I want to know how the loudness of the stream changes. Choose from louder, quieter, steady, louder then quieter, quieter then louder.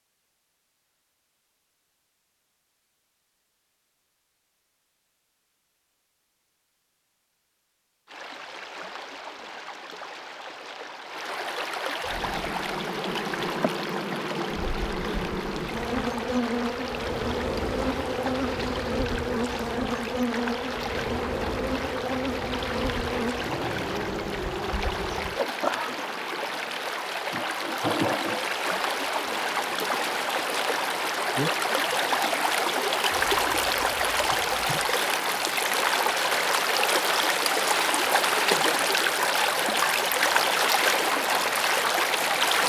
louder.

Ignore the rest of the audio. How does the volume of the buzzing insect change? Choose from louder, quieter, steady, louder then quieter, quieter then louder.
quieter.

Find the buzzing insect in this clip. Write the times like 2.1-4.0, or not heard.
12.1-35.0.